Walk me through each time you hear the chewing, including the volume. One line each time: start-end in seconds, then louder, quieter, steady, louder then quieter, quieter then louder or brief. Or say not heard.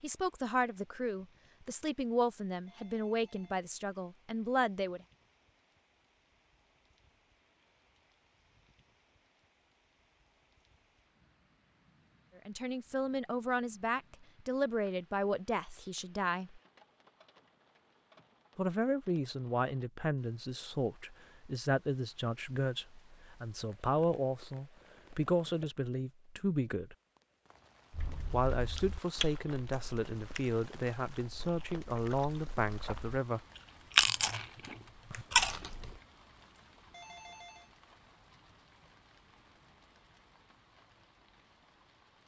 27.9-36.0 quieter then louder.